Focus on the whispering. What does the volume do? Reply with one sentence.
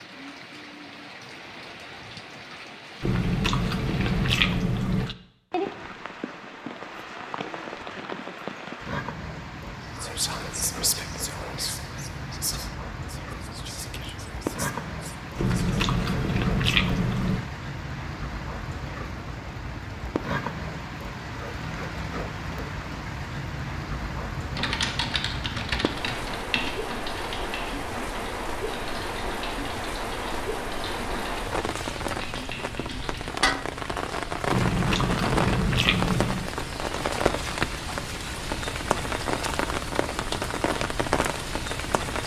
The loudness of the whispering goes down.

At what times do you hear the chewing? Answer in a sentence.
The chewing can be heard from 3.0 to 5.2 s, from 15.3 to 17.4 s and from 34.5 to 36.5 s.